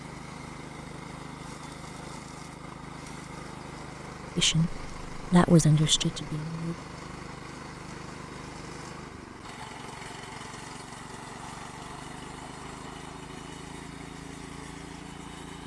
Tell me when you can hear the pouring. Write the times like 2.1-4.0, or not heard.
not heard.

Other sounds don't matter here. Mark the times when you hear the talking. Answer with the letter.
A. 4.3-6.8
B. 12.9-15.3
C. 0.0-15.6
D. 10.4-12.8
A.